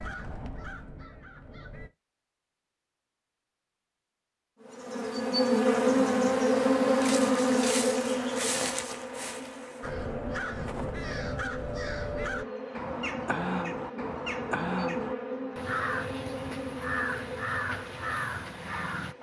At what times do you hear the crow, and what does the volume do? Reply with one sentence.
You can hear the crow briefly from 0.0 to 1.9 s; and from 9.8 to 19.1 s, at a steady volume.